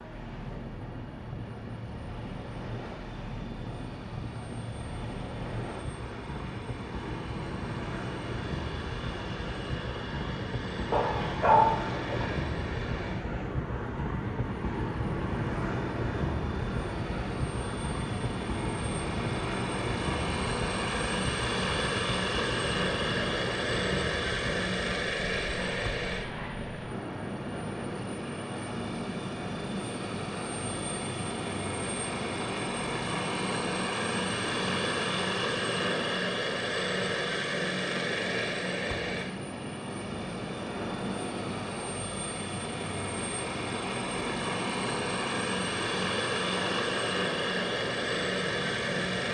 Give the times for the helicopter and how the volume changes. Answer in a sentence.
You can hear the helicopter from 0.0 to 49.2 s, getting louder.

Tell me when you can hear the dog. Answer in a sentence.
The dog can be heard from 10.9 to 12.2 s.